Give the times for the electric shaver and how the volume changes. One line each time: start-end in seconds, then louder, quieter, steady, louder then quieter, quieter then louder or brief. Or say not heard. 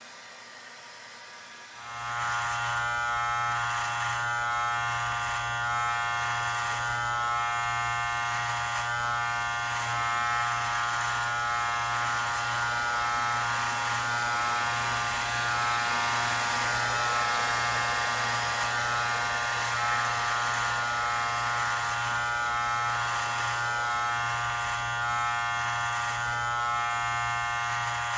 1.8-28.1 steady.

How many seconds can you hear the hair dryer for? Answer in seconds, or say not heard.
28 s.